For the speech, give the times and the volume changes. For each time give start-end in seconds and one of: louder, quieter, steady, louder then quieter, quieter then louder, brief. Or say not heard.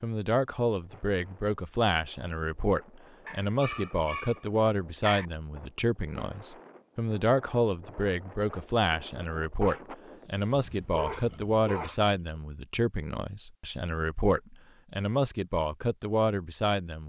0.0-17.0 steady.